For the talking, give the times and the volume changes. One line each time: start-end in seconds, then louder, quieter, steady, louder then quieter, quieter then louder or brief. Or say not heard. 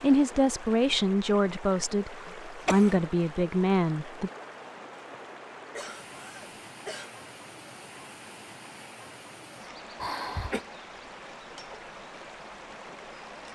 0.0-4.3 quieter then louder.